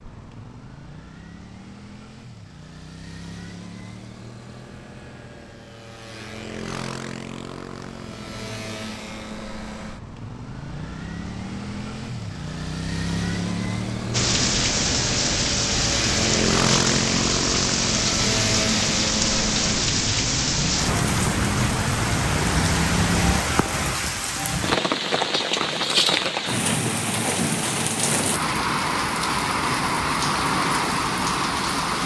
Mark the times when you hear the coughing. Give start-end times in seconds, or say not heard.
not heard.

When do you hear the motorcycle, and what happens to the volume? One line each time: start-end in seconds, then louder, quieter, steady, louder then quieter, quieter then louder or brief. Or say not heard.
0.0-23.4 louder.